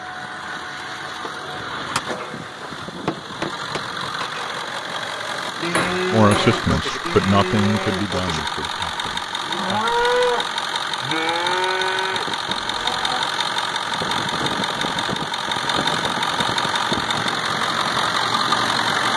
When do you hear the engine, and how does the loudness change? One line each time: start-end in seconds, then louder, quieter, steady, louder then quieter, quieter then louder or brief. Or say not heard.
0.0-19.1 louder.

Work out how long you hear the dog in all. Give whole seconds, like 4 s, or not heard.
not heard.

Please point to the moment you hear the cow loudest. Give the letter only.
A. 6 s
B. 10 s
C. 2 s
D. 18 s
B.